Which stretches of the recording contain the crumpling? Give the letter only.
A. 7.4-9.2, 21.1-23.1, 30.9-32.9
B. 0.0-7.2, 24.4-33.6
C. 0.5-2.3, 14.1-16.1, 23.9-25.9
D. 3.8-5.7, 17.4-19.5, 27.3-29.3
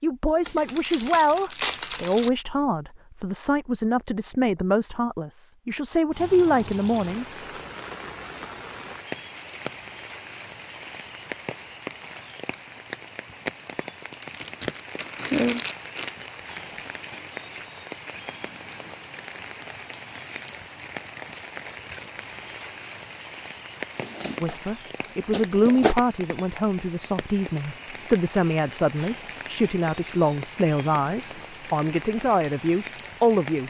C.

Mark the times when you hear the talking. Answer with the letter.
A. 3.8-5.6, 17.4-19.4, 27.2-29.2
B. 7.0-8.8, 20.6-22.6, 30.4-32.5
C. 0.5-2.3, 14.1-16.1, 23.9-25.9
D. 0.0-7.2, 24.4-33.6
D.